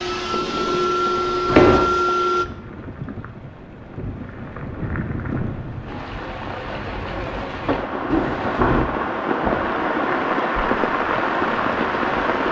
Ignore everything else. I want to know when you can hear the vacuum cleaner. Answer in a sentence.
You can hear the vacuum cleaner from 0.0 to 2.5 s.